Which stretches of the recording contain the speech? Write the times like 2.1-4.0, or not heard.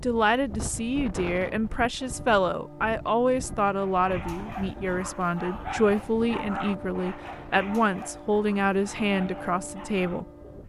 0.0-10.2.